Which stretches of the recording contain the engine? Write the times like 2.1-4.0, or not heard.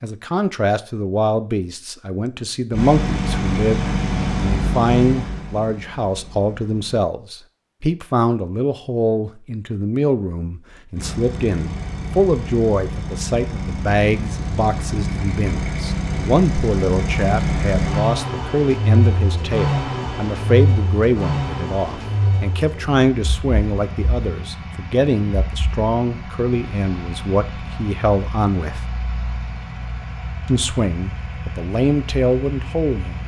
2.7-7.0, 10.9-33.2.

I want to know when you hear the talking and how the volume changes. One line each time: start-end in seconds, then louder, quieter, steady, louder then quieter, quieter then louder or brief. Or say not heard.
0.0-28.8 steady
30.4-33.2 brief.